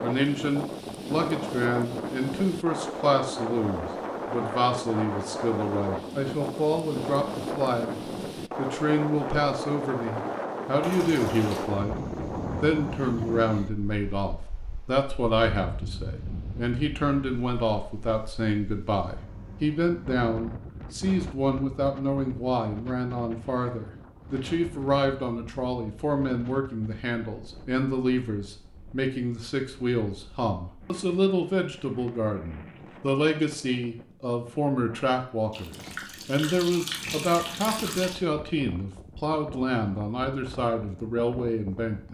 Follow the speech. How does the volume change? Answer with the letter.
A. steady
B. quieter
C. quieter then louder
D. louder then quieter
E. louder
A.